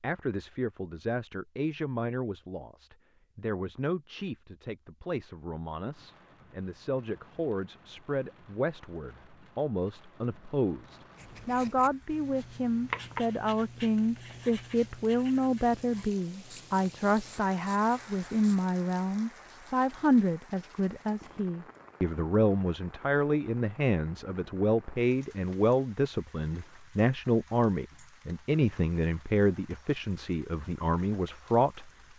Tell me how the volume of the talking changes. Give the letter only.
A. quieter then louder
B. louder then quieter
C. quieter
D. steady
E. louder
E.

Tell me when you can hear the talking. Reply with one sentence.
You can hear the talking from 0.0 to 31.9 s.